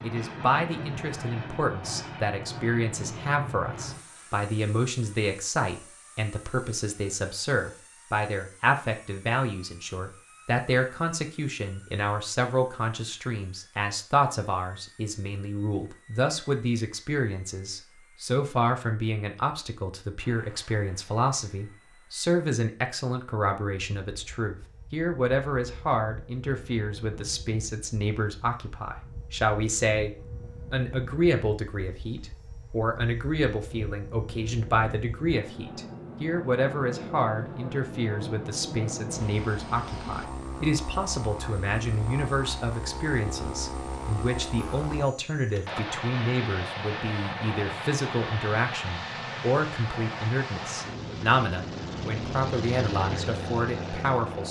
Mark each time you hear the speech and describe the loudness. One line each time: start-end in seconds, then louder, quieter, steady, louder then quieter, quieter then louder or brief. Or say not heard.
0.0-54.4 steady.